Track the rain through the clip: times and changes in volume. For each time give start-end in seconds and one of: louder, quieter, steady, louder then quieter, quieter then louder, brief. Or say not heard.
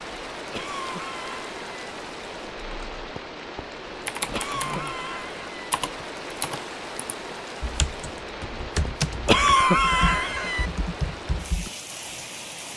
0.0-12.7 steady.